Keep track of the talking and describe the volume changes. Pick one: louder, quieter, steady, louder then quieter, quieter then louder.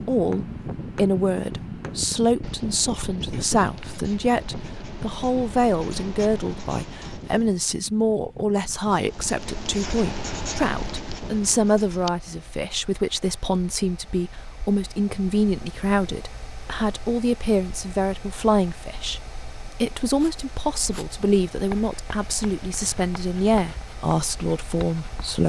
steady.